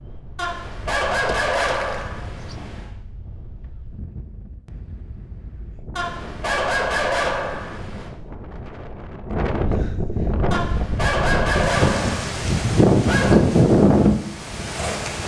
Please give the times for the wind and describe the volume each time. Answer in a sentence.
You can hear the wind from 0.0 to 15.2 s, getting louder.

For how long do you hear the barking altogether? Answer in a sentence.
The barking can be heard for 8 seconds in total.